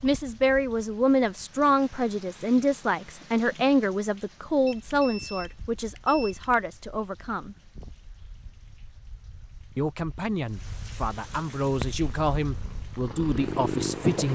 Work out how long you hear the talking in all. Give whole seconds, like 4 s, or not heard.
12 s.